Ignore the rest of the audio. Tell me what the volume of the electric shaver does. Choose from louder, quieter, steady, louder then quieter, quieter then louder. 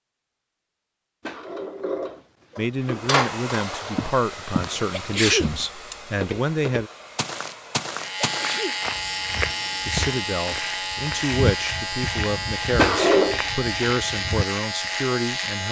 steady.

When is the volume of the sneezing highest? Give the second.
5 s.